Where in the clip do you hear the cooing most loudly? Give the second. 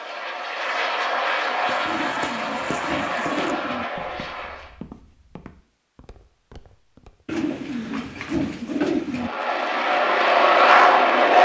9 s.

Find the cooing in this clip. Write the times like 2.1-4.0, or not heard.
1.9-3.9, 7.2-9.3.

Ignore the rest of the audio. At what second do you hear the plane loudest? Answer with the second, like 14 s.
11 s.